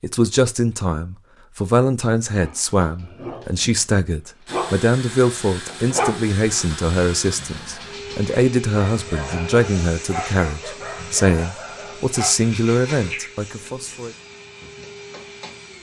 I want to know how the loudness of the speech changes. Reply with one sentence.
The loudness of the speech stays about the same.